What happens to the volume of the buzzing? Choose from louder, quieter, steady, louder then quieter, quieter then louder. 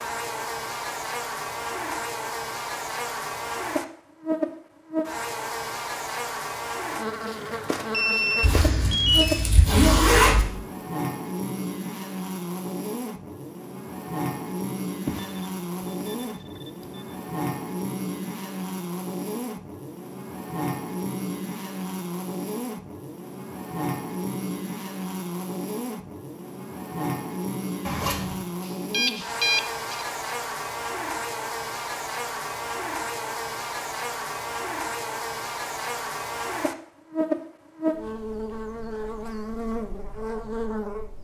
steady.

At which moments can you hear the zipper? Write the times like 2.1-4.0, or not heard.
8.4-10.4, 27.9-28.4.